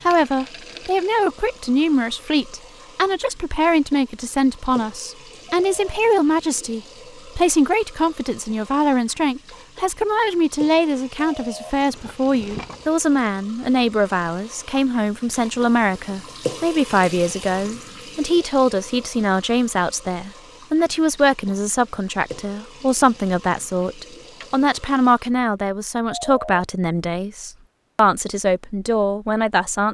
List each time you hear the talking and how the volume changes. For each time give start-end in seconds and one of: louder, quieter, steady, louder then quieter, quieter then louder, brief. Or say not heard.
0.0-29.8 steady.